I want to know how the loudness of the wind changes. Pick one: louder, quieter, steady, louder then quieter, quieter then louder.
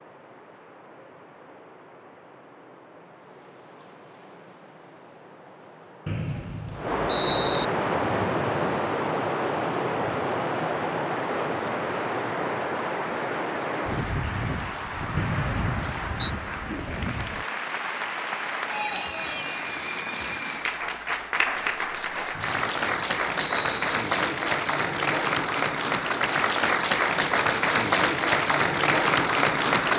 louder then quieter.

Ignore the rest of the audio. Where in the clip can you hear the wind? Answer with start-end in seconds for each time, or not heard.
0.0-17.4.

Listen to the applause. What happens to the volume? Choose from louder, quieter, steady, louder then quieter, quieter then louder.
louder.